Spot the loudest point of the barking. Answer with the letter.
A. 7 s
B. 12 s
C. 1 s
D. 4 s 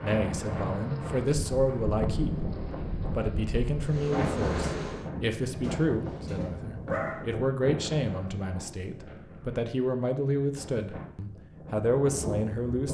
A.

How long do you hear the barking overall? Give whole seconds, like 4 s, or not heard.
2 s.